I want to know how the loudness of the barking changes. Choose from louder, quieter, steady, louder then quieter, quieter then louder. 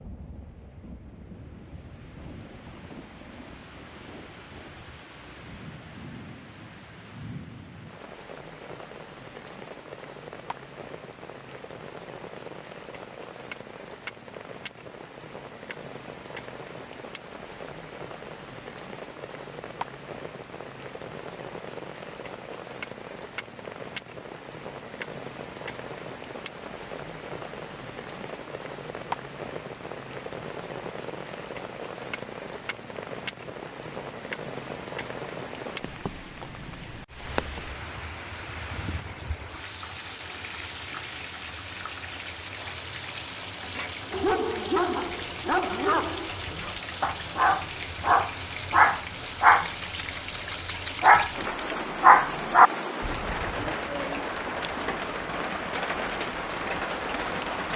louder.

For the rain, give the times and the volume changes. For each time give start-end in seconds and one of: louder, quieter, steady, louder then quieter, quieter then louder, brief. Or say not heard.
0.0-57.7 louder.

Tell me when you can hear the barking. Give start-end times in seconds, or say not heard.
44.1-53.7.